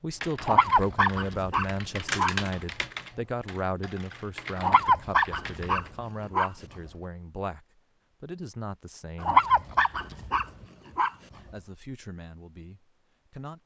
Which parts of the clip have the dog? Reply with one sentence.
You can hear the dog from 0.4 to 2.3 s, from 4.5 to 6.5 s and from 9.2 to 11.1 s.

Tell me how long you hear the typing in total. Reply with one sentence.
You can hear the typing for 6 seconds altogether.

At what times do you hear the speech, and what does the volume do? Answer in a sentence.
You can hear the speech from 0.0 to 9.4 s, getting quieter; and briefly from 11.3 to 13.6 s.